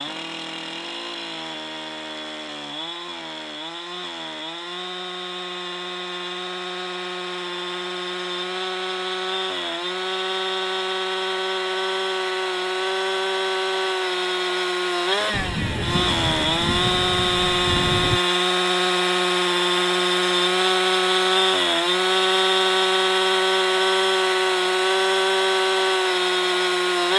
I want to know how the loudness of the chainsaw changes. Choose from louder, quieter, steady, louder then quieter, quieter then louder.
louder.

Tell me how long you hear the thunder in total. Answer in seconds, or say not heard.
3 s.